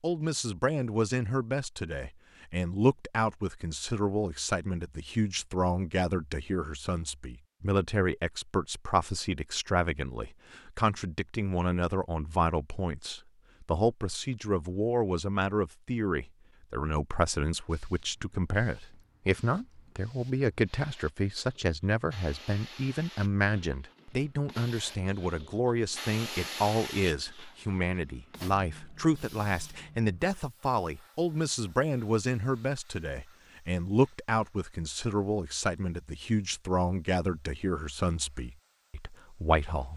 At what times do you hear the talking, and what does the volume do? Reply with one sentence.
The talking can be heard from 0.0 to 39.9 s, at a steady volume.